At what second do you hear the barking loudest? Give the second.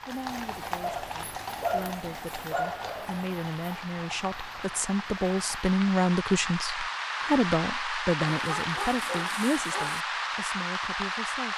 2 s.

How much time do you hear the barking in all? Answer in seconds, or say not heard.
4 s.